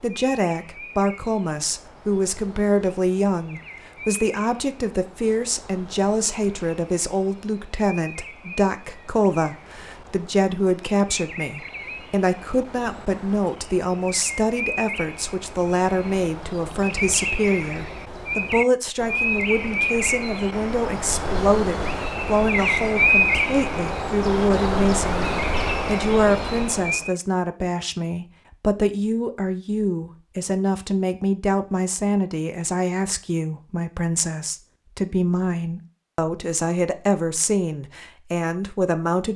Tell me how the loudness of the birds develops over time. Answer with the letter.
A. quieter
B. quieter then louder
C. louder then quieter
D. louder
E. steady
D.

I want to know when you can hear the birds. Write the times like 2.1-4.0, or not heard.
0.0-27.1.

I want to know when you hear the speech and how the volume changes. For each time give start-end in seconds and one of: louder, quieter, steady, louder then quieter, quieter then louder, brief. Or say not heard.
0.0-39.3 steady.